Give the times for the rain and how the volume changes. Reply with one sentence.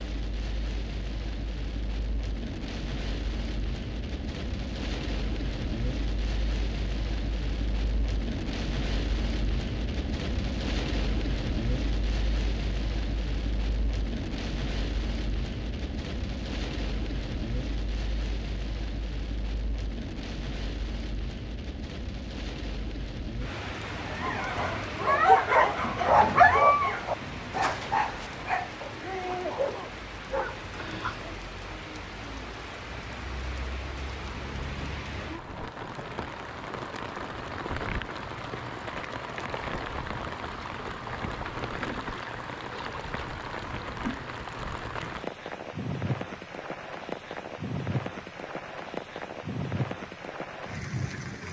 You can hear the rain from 0.0 to 51.4 s, at a steady volume.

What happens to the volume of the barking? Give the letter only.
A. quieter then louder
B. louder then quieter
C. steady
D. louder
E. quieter
E.